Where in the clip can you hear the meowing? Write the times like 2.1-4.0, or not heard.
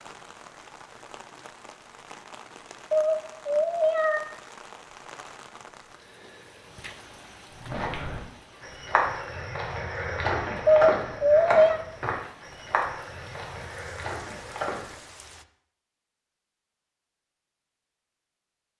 2.9-4.2, 10.7-11.8.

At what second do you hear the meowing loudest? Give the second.
11 s.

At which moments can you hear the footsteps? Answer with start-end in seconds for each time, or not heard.
7.5-15.1.